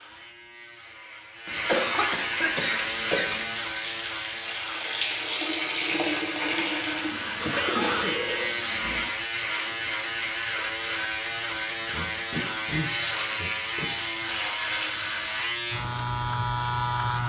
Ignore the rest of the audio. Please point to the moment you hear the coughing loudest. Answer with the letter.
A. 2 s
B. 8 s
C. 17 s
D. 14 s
A.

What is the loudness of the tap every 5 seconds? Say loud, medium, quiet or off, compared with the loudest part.
medium, loud, off, off.